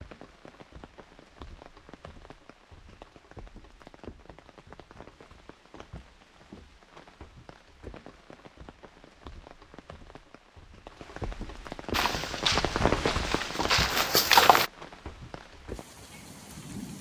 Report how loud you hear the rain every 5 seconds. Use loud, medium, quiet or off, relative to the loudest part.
quiet, quiet, loud, medium.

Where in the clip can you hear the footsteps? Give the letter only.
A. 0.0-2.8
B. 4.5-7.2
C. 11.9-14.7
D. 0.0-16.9
C.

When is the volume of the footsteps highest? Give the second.
14 s.